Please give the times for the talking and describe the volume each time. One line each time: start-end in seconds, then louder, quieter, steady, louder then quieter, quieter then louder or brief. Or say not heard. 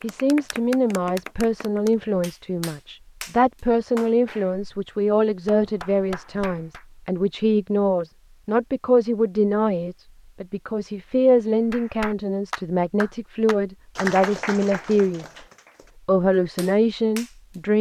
0.0-15.3 steady
16.1-17.7 brief.